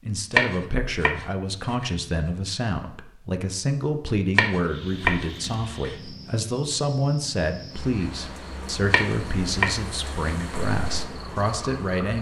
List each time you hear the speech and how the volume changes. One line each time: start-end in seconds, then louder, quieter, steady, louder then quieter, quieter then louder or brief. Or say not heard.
0.0-12.1 steady.